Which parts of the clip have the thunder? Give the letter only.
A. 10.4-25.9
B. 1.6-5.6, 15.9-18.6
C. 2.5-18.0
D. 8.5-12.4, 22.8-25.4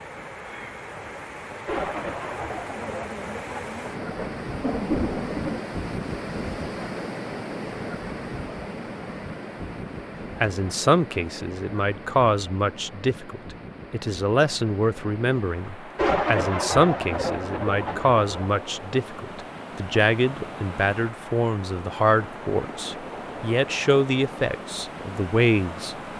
B.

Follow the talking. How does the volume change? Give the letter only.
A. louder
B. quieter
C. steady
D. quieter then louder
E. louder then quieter
C.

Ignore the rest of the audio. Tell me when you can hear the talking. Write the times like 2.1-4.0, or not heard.
10.4-25.9.